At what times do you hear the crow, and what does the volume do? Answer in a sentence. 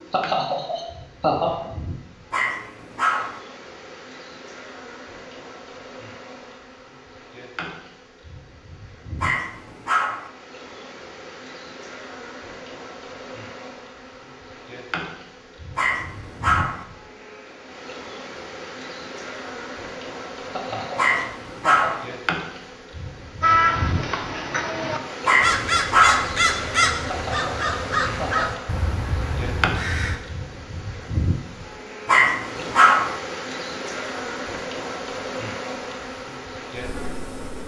The crow can be heard from 23.4 to 30.2 s, getting louder then quieter.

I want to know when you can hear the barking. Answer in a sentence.
The barking can be heard from 2.3 to 3.4 s, from 9.2 to 10.2 s, from 15.8 to 16.9 s, from 20.9 to 22.1 s, from 25.2 to 26.3 s and from 32.0 to 33.1 s.